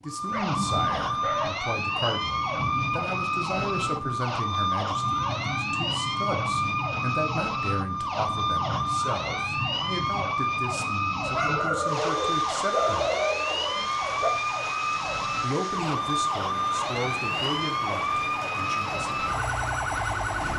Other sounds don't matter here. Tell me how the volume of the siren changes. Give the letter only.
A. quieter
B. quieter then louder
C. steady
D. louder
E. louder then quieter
C.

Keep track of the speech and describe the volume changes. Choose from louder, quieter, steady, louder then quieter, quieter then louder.
steady.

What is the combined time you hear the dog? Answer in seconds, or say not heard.
4 s.